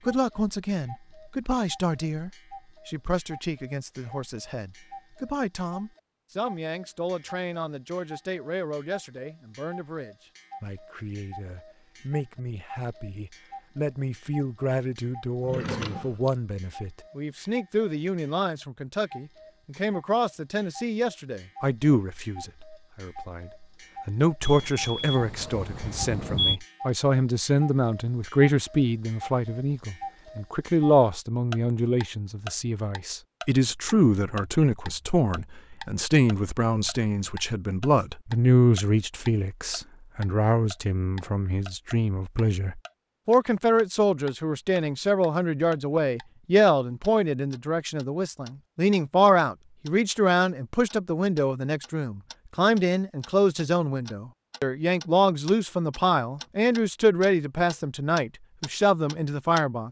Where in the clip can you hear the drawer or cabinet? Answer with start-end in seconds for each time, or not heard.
15.4-16.4.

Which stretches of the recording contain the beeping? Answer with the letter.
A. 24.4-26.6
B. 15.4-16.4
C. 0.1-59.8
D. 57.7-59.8
A.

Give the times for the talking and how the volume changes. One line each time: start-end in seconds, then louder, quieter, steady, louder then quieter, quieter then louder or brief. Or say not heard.
0.1-59.8 louder.